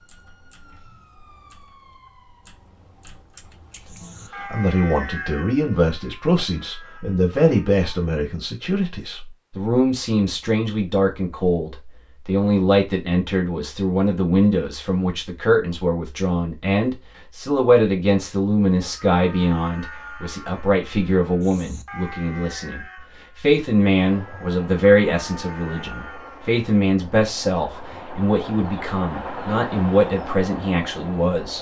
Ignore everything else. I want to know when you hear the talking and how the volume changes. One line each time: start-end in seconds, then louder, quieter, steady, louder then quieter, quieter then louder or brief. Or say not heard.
4.3-31.5 steady.